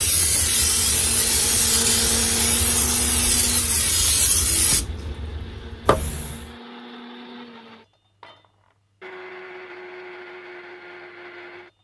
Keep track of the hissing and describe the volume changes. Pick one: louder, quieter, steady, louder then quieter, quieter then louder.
quieter.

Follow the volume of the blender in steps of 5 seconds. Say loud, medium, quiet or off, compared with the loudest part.
loud, medium, medium.